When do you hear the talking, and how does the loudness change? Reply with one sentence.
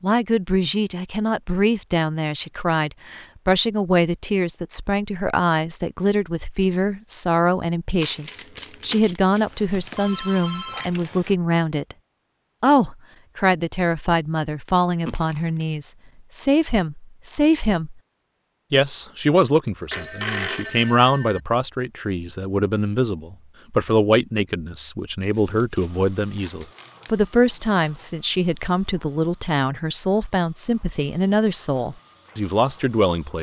The talking can be heard from 0.0 to 11.9 s, at a steady volume; from 12.6 to 17.9 s, at a steady volume; and from 18.7 to 33.3 s, at a steady volume.